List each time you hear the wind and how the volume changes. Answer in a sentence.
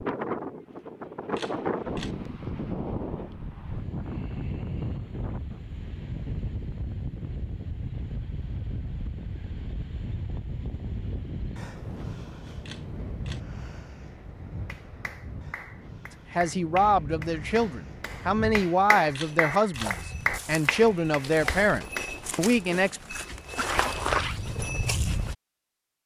You can hear the wind from 0.0 to 18.7 s, getting quieter.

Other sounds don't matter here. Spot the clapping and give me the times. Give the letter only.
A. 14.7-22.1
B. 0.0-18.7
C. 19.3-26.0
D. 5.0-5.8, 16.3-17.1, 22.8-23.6
A.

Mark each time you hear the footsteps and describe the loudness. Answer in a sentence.
You can hear the footsteps from 19.1 to 25.4 s, getting louder.